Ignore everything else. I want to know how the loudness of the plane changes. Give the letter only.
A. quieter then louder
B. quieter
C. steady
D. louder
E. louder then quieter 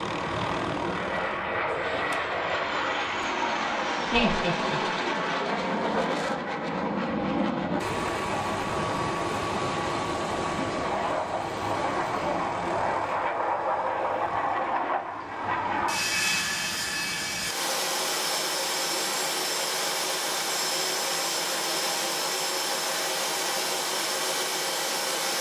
C.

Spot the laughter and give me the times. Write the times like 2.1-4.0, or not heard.
4.0-4.8.